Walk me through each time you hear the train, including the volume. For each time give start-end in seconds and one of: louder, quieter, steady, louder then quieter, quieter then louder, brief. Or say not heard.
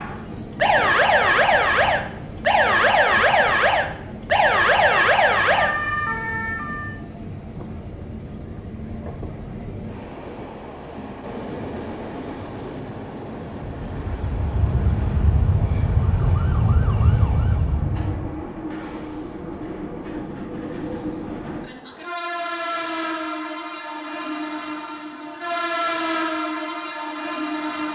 0.0-27.8 louder.